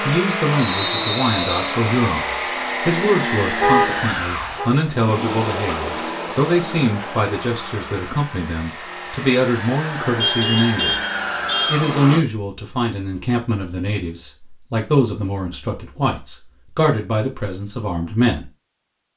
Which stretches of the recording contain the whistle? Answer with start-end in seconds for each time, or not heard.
0.6-1.8.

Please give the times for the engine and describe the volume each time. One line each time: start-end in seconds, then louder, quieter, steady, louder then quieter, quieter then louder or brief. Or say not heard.
0.0-12.2 quieter then louder.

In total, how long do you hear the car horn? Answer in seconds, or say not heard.
3 s.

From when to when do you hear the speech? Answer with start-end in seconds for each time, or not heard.
0.0-10.9, 11.7-18.5.